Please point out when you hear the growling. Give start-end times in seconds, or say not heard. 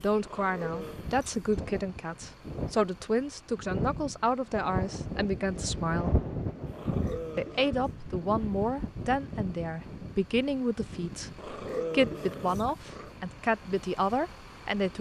0.2-1.1, 6.7-8.0, 11.3-13.1.